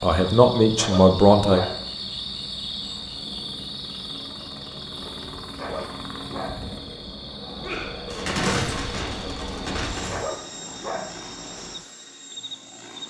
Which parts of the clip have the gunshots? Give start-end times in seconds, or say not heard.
7.6-10.2.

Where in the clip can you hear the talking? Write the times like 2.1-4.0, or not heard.
0.0-1.6.